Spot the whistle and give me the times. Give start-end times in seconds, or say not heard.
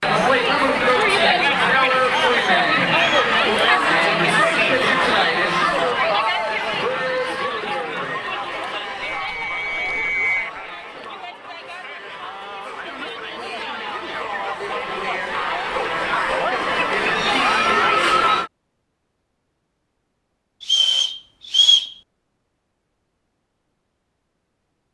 2.1-3.4, 9.0-10.5, 20.6-21.9.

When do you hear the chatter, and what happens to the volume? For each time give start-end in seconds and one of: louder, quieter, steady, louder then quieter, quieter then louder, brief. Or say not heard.
0.0-18.5 quieter then louder.